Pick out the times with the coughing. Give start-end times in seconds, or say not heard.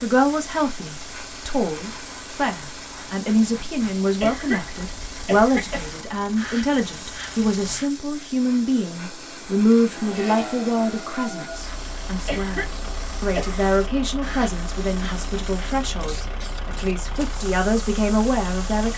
4.2-6.0, 12.2-13.6.